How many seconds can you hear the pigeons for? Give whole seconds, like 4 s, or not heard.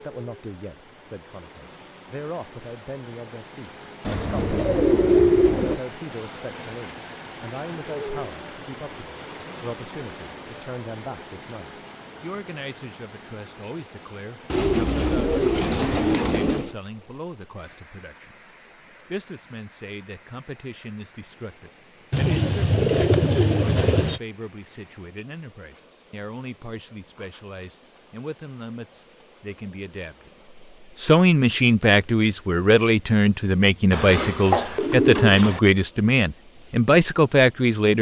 8 s.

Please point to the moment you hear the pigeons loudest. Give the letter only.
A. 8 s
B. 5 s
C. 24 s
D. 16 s
B.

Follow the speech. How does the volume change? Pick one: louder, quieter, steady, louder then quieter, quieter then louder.
louder.